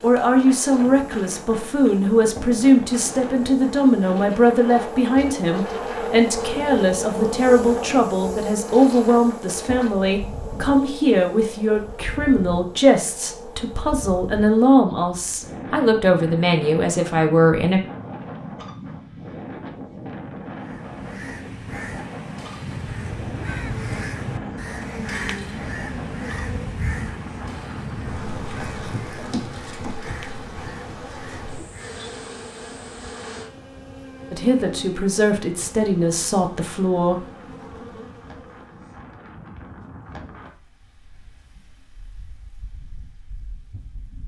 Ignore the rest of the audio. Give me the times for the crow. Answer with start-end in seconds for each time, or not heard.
20.6-32.0.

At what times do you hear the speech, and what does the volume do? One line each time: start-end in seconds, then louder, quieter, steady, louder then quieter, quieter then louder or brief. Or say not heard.
0.0-17.8 steady
34.3-37.2 brief.